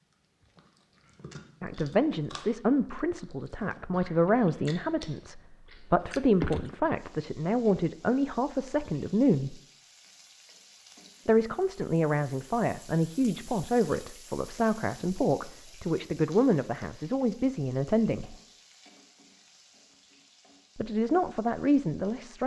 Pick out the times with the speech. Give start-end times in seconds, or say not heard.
1.6-9.6, 11.2-18.4, 20.8-22.4.